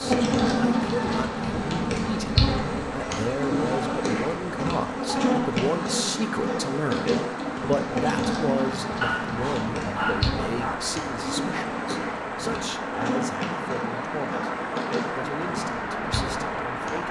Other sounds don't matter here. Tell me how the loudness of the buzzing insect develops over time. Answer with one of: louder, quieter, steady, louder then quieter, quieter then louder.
quieter.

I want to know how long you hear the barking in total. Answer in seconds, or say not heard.
2 s.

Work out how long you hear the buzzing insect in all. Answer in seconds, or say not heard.
17 s.